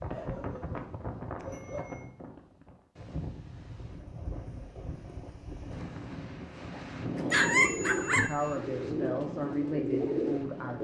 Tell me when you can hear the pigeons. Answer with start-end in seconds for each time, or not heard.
7.3-10.7.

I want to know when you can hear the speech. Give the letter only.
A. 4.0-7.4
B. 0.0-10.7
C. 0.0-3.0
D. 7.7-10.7
D.